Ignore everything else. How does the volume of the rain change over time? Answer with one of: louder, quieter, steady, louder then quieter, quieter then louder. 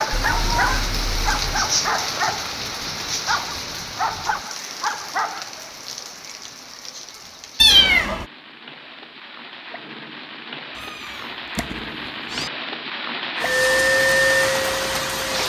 quieter then louder.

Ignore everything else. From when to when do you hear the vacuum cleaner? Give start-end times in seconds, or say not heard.
13.3-15.4.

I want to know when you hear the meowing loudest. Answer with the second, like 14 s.
8 s.